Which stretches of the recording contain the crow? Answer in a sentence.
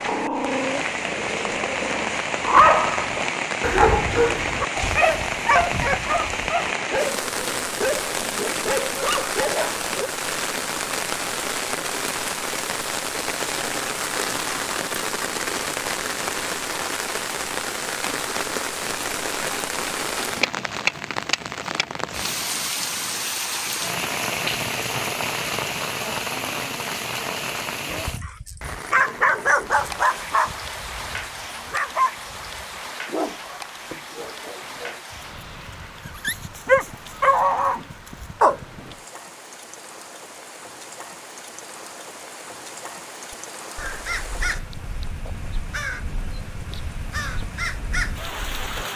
You can hear the crow from 43.3 to 48.6 s.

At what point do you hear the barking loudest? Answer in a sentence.
The volume of the barking peaks at 3 seconds.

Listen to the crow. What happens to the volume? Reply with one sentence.
The volume of the crow goes down, then up.